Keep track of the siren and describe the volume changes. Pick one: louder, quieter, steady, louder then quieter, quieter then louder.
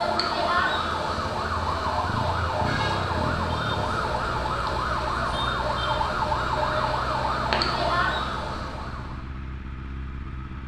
steady.